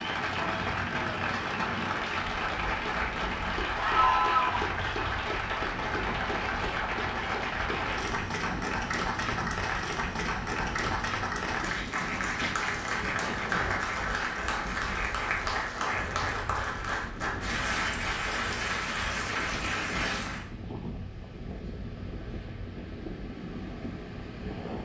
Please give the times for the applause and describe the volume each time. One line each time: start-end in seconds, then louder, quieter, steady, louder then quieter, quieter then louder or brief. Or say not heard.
0.0-20.4 steady.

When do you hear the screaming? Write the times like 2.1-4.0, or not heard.
3.8-4.7.